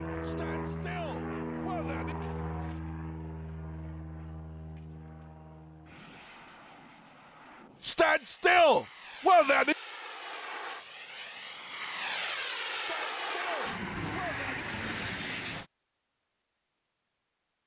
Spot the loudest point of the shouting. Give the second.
9 s.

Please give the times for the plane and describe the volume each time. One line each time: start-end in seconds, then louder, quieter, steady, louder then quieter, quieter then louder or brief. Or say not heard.
0.0-15.7 quieter then louder.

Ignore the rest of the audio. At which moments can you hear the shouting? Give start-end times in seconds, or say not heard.
0.2-2.1, 7.8-9.8, 12.7-14.7.